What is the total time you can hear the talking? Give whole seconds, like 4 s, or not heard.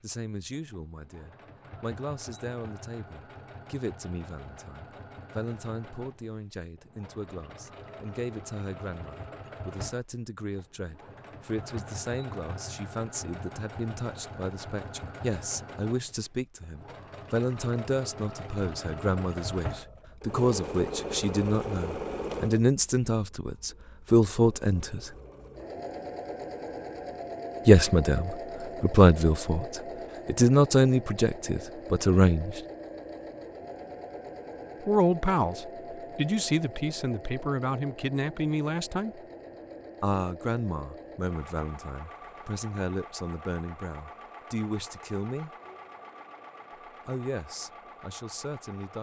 42 s.